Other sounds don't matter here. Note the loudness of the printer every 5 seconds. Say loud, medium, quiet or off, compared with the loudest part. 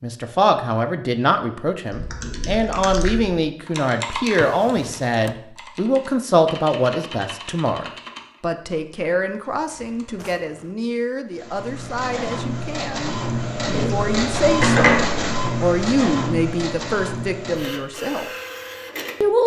off, off, loud, medium.